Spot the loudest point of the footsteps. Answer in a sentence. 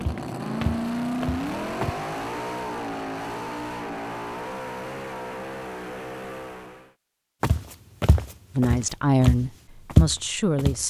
The volume of the footsteps peaks at 10 seconds.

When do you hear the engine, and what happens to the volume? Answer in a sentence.
The engine can be heard from 0.0 to 7.0 s, getting quieter.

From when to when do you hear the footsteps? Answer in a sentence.
You can hear the footsteps from 0.0 to 1.9 s and from 7.4 to 10.8 s.